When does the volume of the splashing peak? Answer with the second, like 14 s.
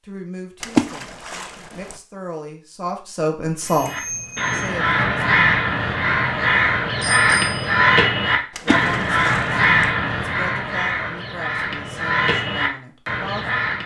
1 s.